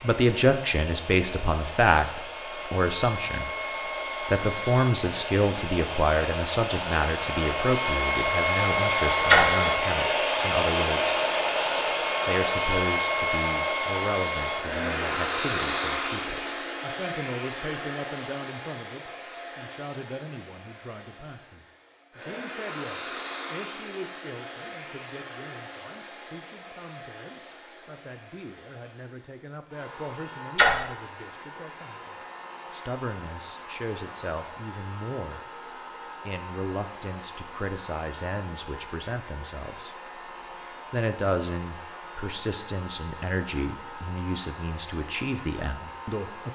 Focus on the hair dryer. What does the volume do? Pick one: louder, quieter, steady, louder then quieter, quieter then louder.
quieter.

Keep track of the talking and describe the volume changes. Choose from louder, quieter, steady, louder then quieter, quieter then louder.
quieter then louder.